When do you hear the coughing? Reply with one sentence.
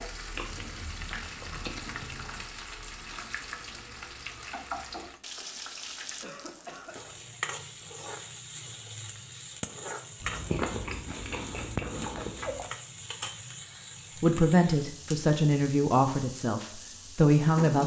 You can hear the coughing from 6.2 to 7.0 s.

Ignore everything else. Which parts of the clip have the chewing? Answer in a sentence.
The chewing can be heard from 0.3 to 2.5 s and from 10.2 to 12.7 s.